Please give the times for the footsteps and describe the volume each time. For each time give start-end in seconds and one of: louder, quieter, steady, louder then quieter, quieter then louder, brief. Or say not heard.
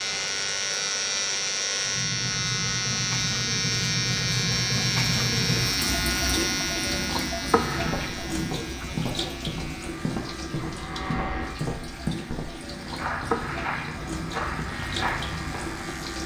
7.8-15.8 steady.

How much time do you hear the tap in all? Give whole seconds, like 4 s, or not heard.
16 s.